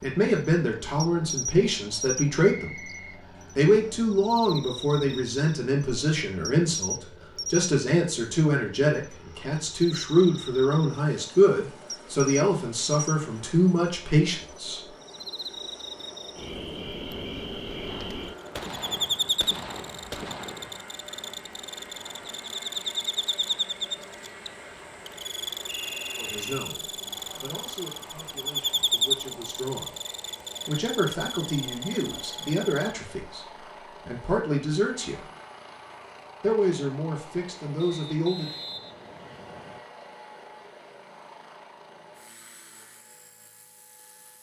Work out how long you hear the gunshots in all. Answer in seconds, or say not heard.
3 s.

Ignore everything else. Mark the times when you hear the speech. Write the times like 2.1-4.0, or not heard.
0.0-2.9, 3.5-14.9, 26.1-29.9, 30.6-35.2, 36.4-38.5.